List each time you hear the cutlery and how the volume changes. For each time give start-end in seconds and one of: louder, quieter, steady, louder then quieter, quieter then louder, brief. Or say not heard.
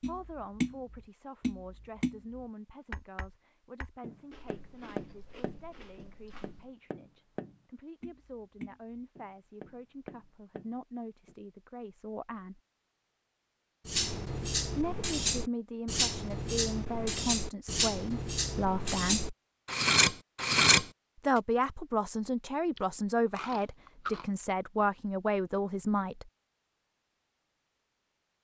13.8-20.9 louder.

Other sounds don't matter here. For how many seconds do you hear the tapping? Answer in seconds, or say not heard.
11 s.